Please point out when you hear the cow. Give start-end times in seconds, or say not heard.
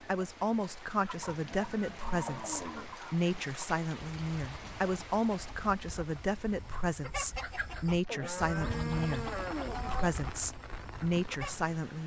1.1-3.0, 8.1-10.1.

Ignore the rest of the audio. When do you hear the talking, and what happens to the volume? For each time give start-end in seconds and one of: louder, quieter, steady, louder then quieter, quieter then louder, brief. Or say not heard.
0.1-12.0 steady.